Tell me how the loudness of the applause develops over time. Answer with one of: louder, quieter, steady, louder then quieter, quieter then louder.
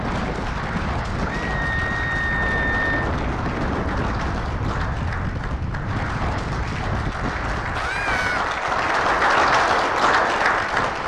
louder.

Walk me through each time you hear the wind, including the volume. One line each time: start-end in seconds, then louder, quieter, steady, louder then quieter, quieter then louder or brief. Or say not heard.
0.0-11.0 quieter.